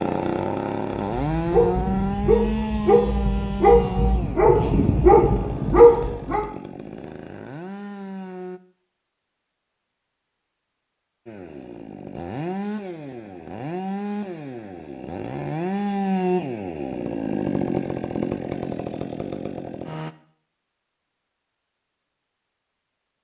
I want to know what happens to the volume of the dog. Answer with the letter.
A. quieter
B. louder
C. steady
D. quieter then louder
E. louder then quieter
B.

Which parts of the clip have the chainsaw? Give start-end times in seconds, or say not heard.
0.0-8.6, 11.2-20.1.